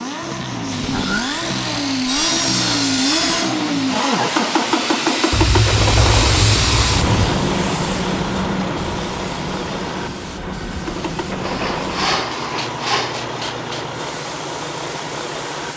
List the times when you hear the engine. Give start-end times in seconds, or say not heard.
0.0-15.7.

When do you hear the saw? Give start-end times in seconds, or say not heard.
0.8-3.5, 5.3-7.2, 11.4-13.3.